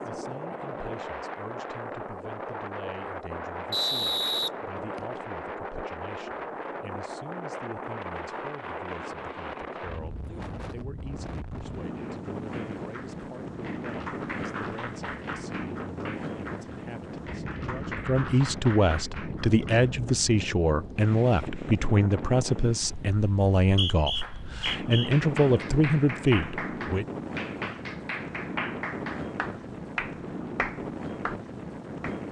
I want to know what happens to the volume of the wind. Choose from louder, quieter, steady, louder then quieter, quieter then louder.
steady.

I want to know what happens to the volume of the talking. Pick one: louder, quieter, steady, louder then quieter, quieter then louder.
louder.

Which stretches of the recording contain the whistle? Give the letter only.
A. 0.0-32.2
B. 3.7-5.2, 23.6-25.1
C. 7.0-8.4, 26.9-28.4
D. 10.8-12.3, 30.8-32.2
B.